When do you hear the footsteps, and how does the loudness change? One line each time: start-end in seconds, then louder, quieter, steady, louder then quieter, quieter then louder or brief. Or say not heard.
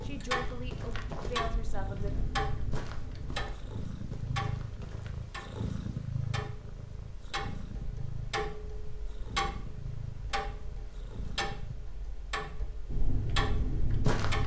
0.0-5.1 quieter
12.8-14.4 brief.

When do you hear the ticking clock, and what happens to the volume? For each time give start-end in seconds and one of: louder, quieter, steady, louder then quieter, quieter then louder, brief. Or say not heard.
0.0-14.4 steady.